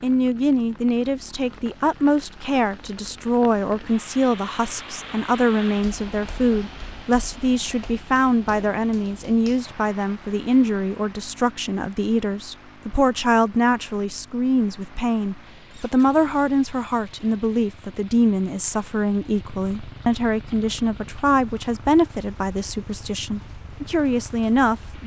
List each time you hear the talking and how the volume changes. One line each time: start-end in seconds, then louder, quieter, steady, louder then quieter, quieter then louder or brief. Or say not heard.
0.0-25.0 steady.